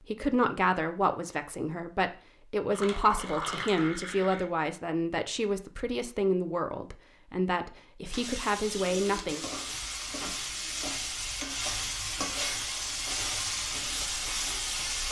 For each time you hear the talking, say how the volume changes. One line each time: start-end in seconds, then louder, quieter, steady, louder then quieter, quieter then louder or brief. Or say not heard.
0.0-9.4 steady.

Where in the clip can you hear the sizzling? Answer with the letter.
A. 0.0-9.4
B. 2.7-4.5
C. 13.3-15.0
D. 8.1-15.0
D.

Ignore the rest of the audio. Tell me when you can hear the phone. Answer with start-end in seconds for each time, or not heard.
not heard.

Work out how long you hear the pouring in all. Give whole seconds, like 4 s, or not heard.
2 s.